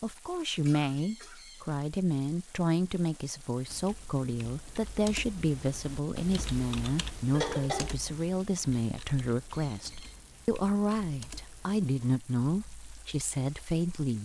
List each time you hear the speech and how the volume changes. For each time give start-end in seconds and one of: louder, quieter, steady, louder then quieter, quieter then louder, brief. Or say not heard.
0.0-14.2 steady.